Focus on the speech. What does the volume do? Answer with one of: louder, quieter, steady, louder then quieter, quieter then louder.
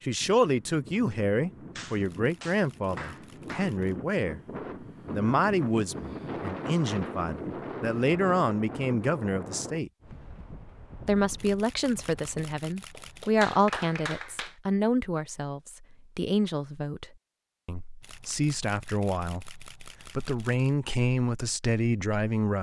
steady.